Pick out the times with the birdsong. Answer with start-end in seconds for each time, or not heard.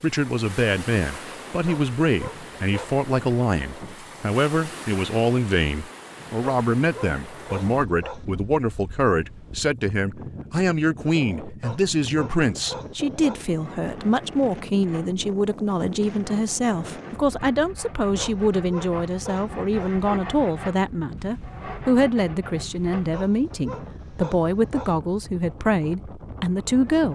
not heard.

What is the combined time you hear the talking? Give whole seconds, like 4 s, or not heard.
27 s.